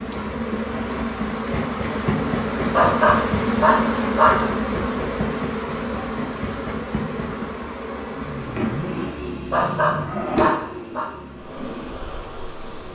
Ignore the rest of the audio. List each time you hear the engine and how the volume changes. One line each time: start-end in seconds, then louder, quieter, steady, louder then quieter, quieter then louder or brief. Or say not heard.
8.1-12.9 quieter.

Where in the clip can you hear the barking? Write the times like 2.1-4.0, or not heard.
2.7-4.4, 9.5-11.1.